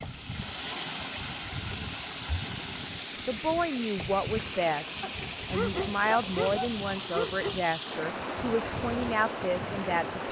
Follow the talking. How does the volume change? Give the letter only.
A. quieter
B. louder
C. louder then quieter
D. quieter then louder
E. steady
E.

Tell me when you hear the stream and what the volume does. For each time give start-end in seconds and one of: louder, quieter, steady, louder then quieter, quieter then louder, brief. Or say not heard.
0.0-10.2 steady.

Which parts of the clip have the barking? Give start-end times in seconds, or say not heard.
5.0-7.5.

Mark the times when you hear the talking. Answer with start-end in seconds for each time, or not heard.
3.2-10.2.